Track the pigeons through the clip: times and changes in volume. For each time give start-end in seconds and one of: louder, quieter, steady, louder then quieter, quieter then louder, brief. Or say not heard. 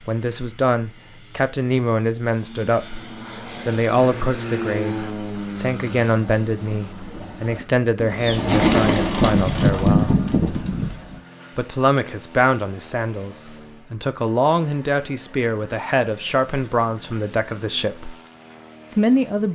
5.7-11.2 louder.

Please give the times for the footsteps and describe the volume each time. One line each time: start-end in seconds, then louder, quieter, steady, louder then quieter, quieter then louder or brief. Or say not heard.
not heard.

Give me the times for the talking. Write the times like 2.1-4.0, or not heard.
0.0-10.2, 11.6-18.1, 18.9-19.4.